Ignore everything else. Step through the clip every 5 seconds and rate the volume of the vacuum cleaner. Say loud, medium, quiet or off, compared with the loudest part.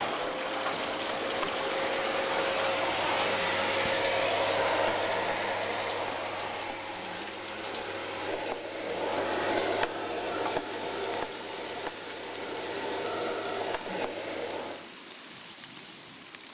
loud, loud, medium, off.